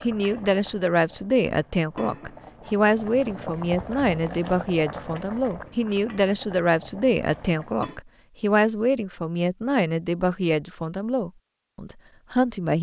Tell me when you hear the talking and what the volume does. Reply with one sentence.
The talking can be heard from 0.0 to 12.7 s, at a steady volume.